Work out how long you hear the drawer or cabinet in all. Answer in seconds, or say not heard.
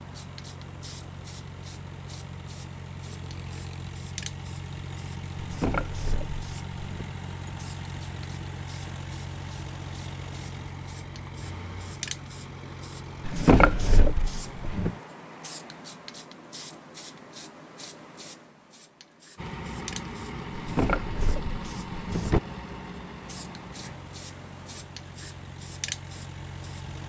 5 s.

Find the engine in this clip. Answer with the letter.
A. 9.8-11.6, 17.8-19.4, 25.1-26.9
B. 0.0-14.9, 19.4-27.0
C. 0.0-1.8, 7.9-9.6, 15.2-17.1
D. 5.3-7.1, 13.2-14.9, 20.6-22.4
B.